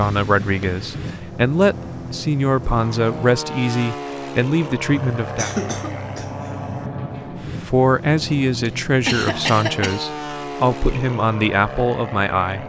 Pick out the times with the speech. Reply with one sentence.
You can hear the speech from 0.0 to 5.5 s and from 7.6 to 12.6 s.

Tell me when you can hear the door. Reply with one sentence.
You can't hear the door here.